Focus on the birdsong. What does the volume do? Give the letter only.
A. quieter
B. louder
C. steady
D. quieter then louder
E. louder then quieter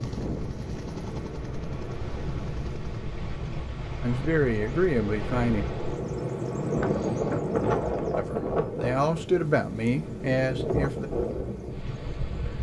E.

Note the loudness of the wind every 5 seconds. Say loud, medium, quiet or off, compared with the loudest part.
medium, loud, loud.